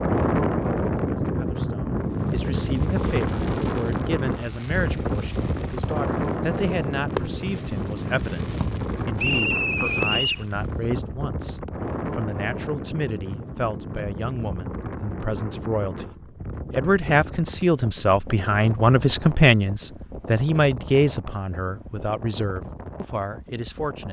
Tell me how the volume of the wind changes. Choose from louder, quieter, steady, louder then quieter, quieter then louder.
quieter.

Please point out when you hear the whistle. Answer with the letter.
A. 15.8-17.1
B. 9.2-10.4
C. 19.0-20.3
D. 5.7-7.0
B.